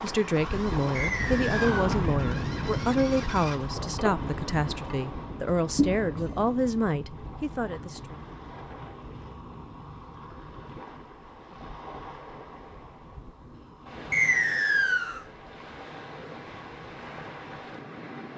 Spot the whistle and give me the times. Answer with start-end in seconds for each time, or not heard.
0.9-1.8, 14.1-15.2.